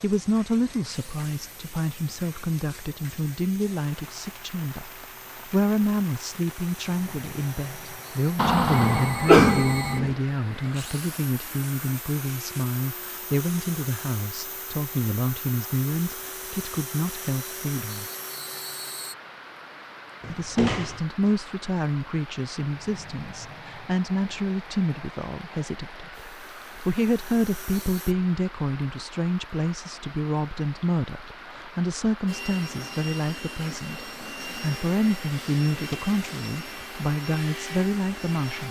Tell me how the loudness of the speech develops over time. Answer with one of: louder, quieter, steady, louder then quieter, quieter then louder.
steady.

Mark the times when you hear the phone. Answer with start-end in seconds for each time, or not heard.
8.7-10.1.